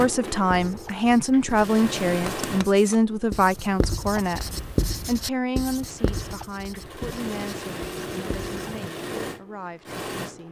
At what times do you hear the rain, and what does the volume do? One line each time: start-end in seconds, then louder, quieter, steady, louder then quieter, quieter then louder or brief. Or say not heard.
not heard.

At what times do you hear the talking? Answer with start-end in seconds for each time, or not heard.
0.0-10.4.